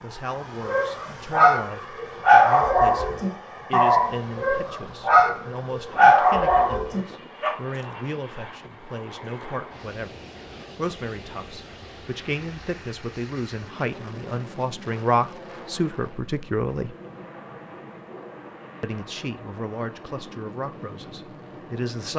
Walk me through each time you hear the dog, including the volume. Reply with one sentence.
You can hear the dog from 0.3 to 7.5 s, at a steady volume.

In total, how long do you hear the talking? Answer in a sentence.
You can hear the talking for 20 seconds altogether.